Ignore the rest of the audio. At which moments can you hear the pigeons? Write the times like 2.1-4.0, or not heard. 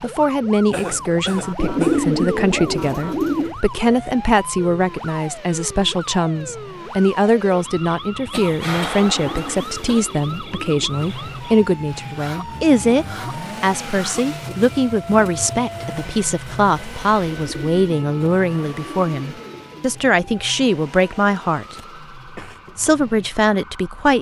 1.6-3.5, 8.9-10.8, 17.3-20.1.